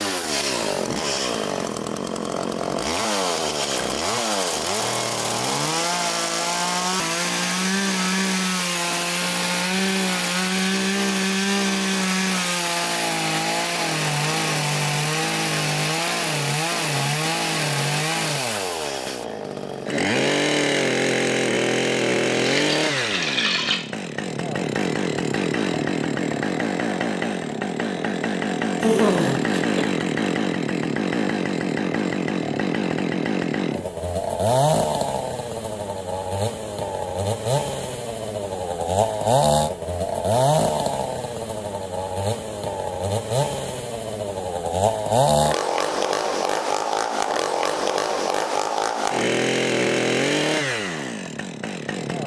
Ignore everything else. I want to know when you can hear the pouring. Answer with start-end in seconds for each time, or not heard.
22.4-23.8.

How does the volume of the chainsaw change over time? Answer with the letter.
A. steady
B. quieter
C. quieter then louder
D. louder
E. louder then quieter
A.